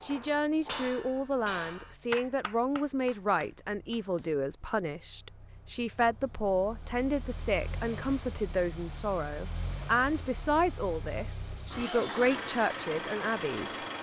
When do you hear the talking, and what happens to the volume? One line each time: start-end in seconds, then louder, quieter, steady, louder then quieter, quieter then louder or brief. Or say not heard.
0.0-13.8 steady.